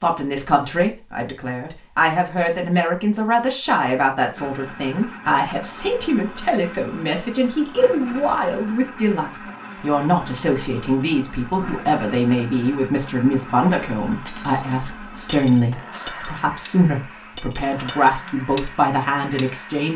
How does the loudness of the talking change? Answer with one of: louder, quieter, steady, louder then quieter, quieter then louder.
steady.